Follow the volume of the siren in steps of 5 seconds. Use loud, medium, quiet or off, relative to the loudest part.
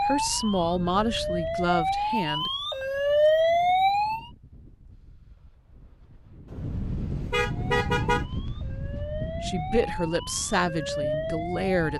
loud, quiet, medium.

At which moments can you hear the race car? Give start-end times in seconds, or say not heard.
not heard.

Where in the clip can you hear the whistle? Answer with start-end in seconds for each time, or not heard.
not heard.